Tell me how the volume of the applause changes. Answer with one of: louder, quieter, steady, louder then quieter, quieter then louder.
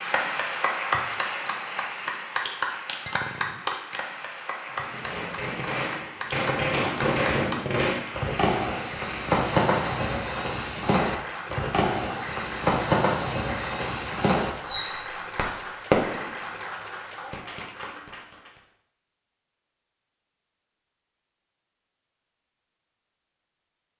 quieter.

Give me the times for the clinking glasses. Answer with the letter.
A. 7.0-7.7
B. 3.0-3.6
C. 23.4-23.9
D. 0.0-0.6
B.